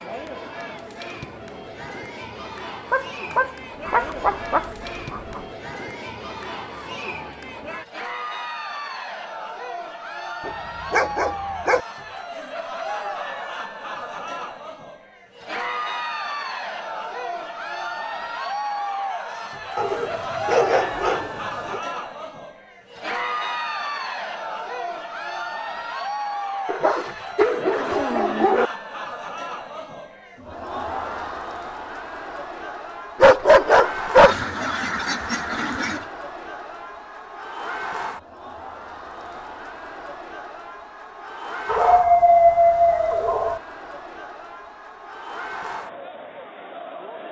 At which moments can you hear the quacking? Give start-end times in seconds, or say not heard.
3.8-5.5, 34.1-36.1.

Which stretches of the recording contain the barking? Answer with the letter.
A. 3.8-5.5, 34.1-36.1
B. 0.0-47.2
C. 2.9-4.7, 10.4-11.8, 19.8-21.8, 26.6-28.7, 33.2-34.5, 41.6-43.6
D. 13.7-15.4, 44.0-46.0
C.